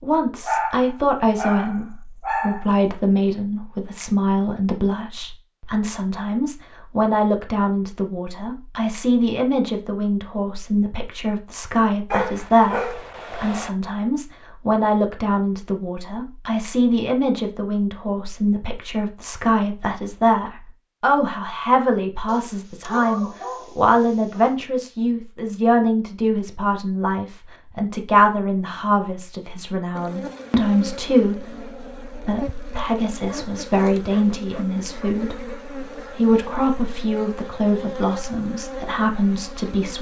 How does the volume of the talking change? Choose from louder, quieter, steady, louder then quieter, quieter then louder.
steady.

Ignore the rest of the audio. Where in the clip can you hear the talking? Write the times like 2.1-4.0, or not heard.
0.0-39.9.